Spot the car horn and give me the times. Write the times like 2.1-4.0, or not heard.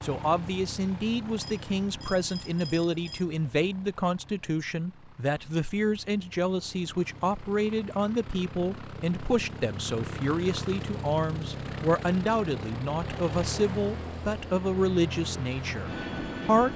not heard.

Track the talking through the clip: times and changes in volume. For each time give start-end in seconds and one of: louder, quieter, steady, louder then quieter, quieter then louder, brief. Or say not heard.
0.0-16.7 steady.